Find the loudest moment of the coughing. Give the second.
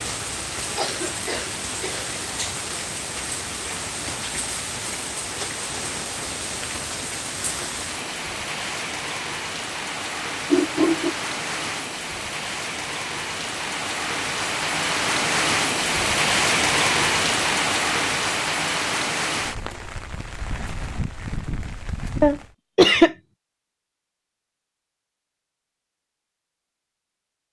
23 s.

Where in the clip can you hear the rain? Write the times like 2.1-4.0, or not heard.
0.0-22.6.